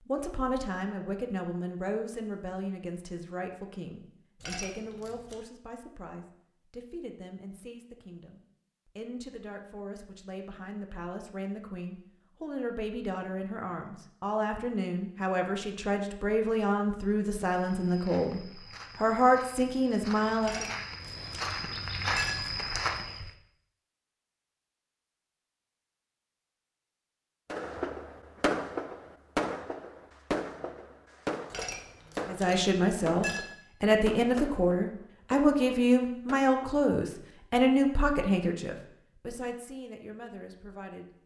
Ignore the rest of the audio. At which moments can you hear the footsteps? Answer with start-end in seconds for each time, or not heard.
17.6-23.3.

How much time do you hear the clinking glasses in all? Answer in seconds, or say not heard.
5 s.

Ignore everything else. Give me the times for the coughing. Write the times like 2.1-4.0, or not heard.
not heard.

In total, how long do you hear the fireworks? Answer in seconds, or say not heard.
9 s.